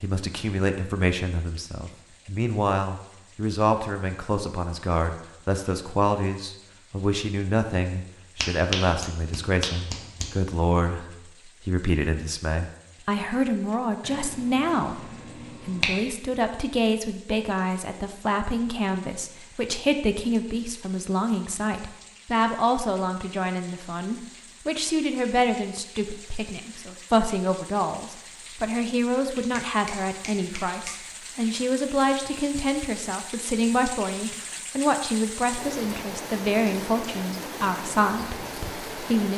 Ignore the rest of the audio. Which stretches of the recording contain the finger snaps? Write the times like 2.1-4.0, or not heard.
8.3-10.3, 14.0-15.9, 29.5-30.9.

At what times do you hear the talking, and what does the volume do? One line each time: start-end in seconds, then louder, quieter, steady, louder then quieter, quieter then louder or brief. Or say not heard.
0.0-39.3 steady.